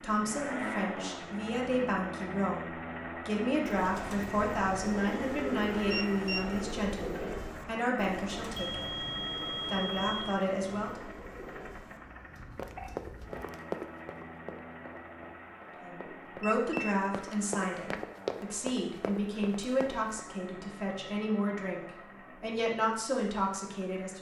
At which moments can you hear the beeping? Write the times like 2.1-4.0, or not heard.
5.9-6.5, 8.5-10.3, 16.4-17.4.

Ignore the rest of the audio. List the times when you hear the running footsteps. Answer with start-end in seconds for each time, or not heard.
12.6-20.1.